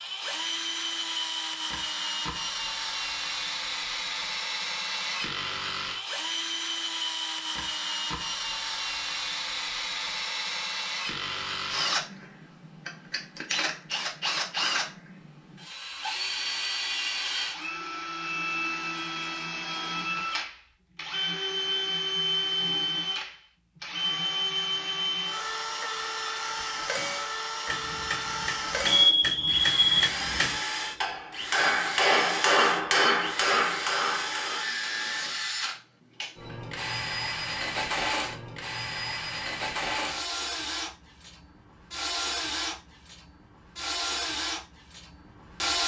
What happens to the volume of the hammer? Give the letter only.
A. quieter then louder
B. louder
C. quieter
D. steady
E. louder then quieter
B.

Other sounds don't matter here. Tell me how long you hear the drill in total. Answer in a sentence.
You can hear the drill for 46 seconds altogether.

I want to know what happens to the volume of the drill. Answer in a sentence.
The loudness of the drill stays about the same.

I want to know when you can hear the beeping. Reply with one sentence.
The beeping can be heard from 28.9 to 30.1 s.